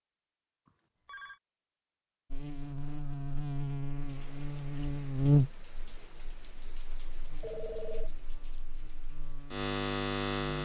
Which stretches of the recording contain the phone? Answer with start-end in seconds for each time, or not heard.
0.7-1.4, 7.4-8.2.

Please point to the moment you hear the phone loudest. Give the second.
8 s.